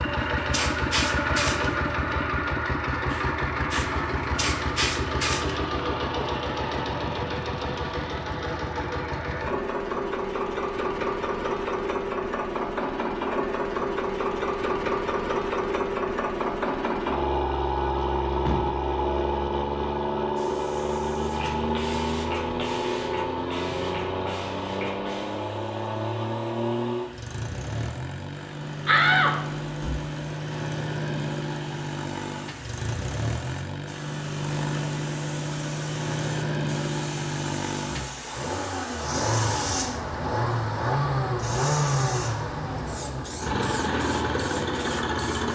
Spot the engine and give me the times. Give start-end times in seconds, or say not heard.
0.0-45.5.